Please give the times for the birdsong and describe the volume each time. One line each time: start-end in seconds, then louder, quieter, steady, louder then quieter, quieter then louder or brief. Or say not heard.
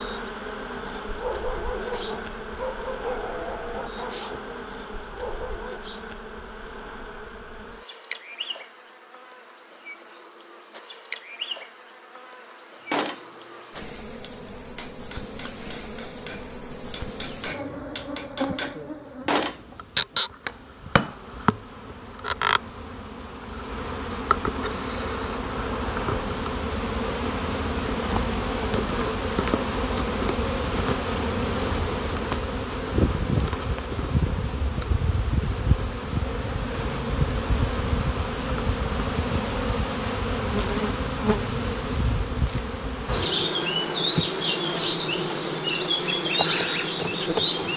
not heard.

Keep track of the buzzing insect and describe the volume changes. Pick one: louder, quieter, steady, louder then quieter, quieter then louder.
louder.